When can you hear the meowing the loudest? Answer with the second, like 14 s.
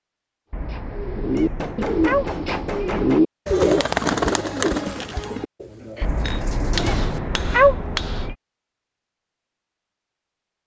8 s.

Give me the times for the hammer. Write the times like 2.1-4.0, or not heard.
1.4-3.2, 6.2-8.2.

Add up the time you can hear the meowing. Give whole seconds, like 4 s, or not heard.
5 s.